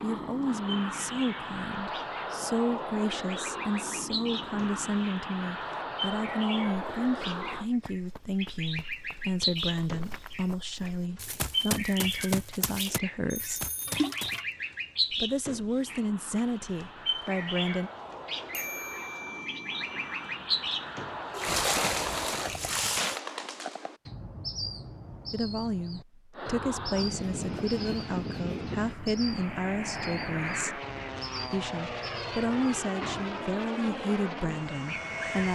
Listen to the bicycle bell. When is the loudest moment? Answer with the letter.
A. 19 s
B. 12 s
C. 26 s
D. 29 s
A.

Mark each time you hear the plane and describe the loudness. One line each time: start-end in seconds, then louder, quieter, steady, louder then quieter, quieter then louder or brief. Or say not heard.
0.0-7.7 steady
15.8-22.6 louder
26.3-35.4 steady.